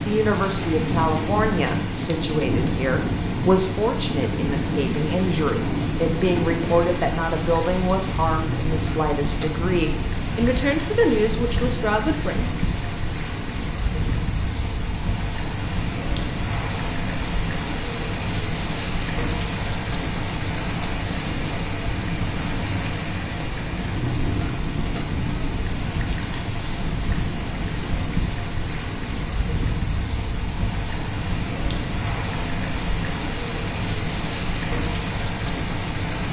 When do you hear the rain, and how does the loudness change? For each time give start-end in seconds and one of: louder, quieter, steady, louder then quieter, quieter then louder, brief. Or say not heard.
0.0-36.2 steady.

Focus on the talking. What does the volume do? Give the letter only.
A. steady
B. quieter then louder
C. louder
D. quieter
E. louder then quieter
A.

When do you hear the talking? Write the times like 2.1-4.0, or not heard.
0.1-12.6.